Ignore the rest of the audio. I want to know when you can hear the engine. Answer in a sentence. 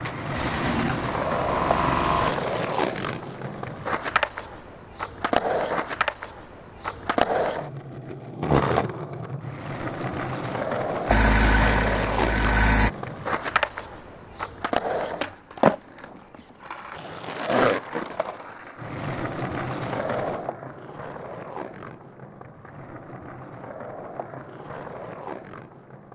The engine can be heard from 0.0 to 2.4 s and from 11.1 to 12.9 s.